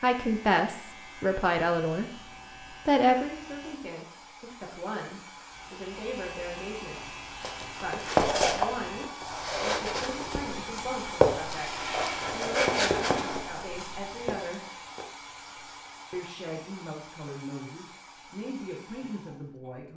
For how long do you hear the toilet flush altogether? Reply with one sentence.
The toilet flush can be heard for 2 seconds in total.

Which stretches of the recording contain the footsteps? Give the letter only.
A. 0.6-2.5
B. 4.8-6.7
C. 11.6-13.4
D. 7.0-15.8
D.